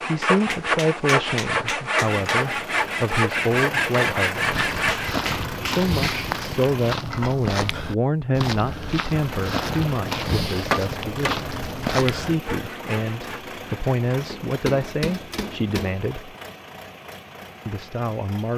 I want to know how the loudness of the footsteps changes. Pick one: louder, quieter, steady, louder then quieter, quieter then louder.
steady.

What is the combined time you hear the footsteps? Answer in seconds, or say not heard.
8 s.